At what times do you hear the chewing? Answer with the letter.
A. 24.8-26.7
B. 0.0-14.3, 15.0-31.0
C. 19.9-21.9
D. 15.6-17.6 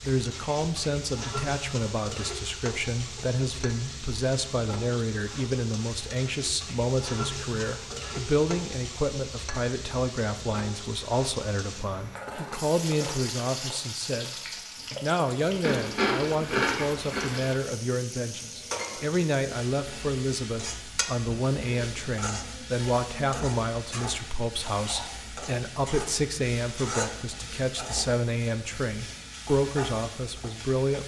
D.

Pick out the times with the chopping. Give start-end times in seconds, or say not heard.
not heard.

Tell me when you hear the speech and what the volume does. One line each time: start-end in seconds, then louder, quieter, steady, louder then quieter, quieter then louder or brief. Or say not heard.
0.0-14.3 steady
15.0-31.0 steady.